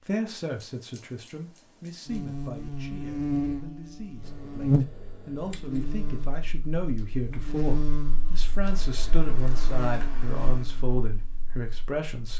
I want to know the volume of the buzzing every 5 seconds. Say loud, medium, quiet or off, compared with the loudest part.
loud, medium, quiet.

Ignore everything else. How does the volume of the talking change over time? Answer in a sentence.
The loudness of the talking goes down, then up.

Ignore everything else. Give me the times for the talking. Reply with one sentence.
The talking can be heard from 0.1 to 12.3 s.